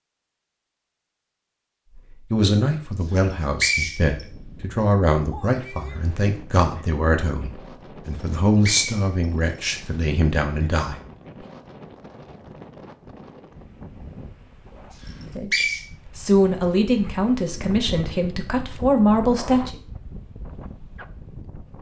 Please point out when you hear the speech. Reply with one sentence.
You can hear the speech from 1.9 to 10.9 s and from 15.3 to 19.8 s.